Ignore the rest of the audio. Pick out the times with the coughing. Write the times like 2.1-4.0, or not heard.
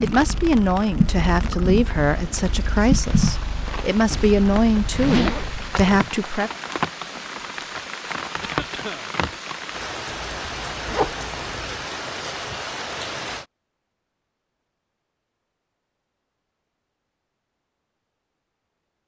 8.4-9.1.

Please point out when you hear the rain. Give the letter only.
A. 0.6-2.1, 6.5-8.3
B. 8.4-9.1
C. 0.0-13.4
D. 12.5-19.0
C.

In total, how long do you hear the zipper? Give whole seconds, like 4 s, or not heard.
3 s.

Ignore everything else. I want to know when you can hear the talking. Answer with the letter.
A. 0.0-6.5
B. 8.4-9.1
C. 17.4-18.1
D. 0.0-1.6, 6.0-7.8
A.